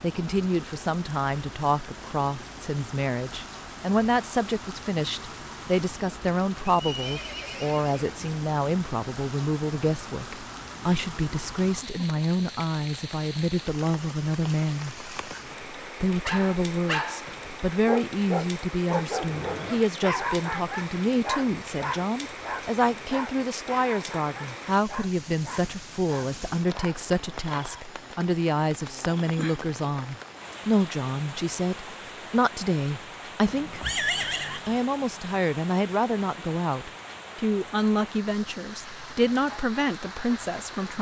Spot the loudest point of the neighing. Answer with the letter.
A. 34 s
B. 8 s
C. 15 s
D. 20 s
A.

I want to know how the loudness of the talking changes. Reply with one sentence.
The loudness of the talking stays about the same.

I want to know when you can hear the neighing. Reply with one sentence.
You can hear the neighing from 6.7 to 8.2 s, from 19.1 to 19.9 s and from 33.5 to 34.8 s.